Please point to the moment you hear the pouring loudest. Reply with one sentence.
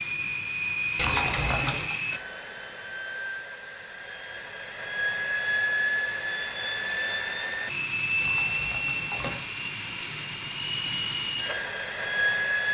The loudest moment of the pouring is at 1 second.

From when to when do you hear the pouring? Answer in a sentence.
The pouring can be heard from 0.9 to 1.9 s and from 8.2 to 9.5 s.